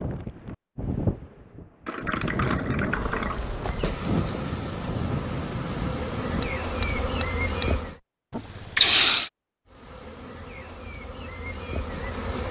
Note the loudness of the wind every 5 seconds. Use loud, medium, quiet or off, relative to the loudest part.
loud, loud, off.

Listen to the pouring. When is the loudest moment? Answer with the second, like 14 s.
9 s.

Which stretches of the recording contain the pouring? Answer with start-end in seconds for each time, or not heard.
1.9-3.4, 8.3-9.3.